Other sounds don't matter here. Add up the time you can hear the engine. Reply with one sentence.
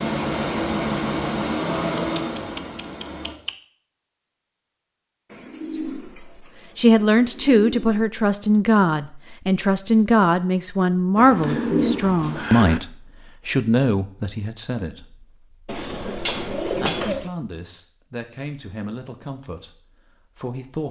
You can hear the engine for 3 seconds altogether.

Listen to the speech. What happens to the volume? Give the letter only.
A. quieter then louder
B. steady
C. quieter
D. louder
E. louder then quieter
C.